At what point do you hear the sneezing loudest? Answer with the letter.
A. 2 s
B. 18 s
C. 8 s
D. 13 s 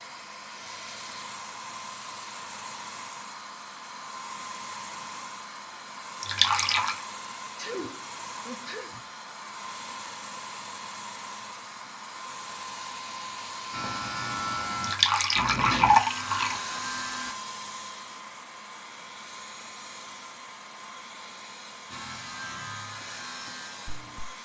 C.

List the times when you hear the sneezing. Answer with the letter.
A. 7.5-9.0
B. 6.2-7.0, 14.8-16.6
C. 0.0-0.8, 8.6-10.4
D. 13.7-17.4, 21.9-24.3
A.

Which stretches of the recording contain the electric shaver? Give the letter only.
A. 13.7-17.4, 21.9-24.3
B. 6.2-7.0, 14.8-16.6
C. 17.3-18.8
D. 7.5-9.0
A.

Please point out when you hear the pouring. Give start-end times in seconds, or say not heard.
6.2-7.0, 14.8-16.6.